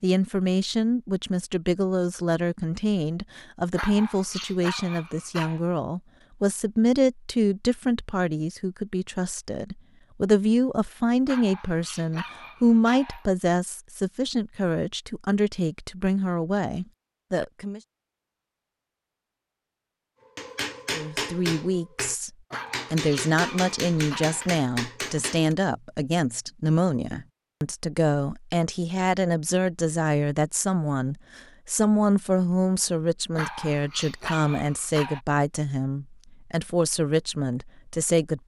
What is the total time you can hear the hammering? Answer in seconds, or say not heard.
5 s.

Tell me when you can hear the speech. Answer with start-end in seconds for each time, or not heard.
0.0-17.8, 20.9-22.3, 22.9-38.4.